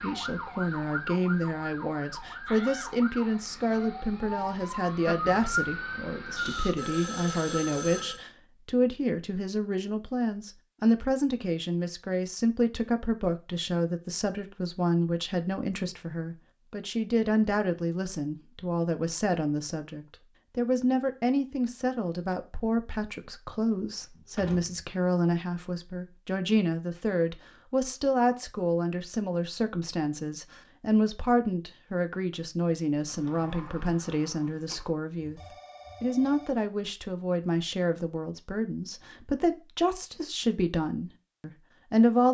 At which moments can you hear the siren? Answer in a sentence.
You can hear the siren from 0.0 to 6.8 s.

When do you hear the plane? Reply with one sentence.
You can't hear the plane here.